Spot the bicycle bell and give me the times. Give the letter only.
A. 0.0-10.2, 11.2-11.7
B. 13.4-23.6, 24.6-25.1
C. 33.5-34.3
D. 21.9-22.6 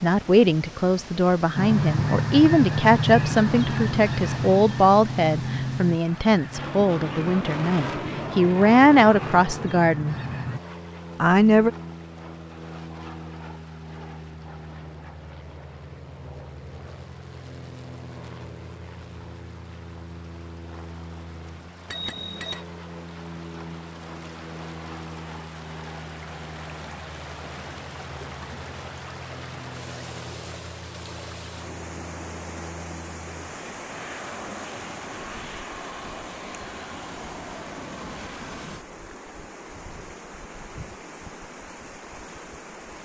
D.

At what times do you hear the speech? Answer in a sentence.
You can hear the speech from 0.0 to 10.2 s and from 11.2 to 11.7 s.